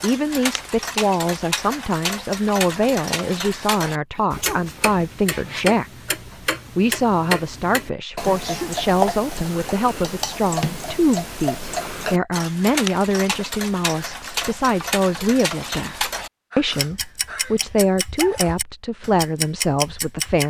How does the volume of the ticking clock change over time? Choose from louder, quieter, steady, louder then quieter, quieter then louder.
steady.